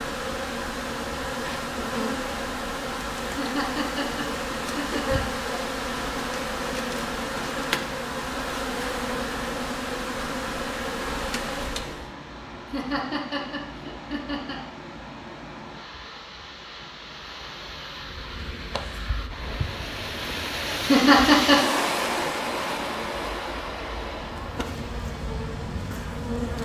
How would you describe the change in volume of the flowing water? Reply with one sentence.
The loudness of the flowing water goes up.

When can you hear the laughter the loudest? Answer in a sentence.
The loudest moment of the laughter is at 21 seconds.